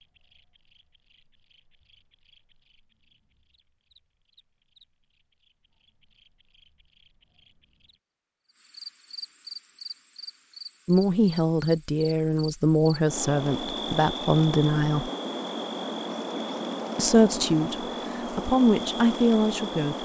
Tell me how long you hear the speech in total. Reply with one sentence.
You can hear the speech for 7 seconds altogether.